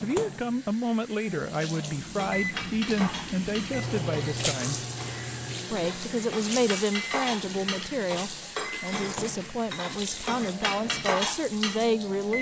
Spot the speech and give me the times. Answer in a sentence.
You can hear the speech from 0.0 to 4.8 s and from 5.7 to 12.3 s.